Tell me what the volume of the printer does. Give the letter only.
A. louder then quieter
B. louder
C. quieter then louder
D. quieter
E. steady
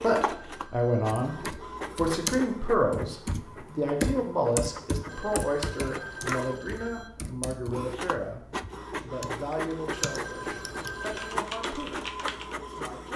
C.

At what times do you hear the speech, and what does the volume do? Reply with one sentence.
You can hear the speech from 0.0 to 13.1 s, getting quieter.